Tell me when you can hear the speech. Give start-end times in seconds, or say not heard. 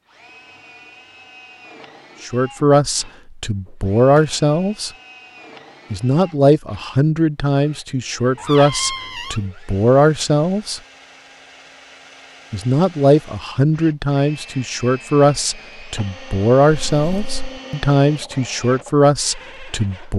2.2-4.9, 5.9-10.8, 12.5-20.1.